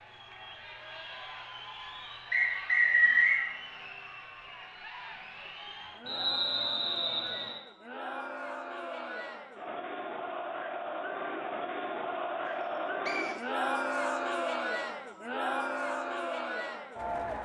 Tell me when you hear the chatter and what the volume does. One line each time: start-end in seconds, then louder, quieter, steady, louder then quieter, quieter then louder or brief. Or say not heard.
0.0-17.3 louder.